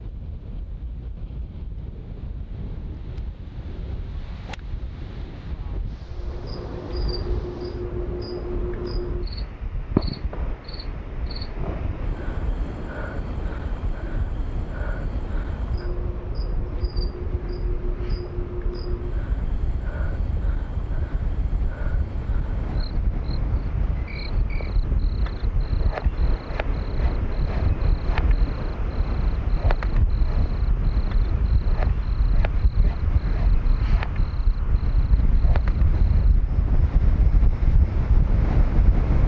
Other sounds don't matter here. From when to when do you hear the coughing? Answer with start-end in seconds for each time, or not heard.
not heard.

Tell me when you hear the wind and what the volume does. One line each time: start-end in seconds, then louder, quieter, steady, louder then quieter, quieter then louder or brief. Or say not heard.
0.0-39.2 louder.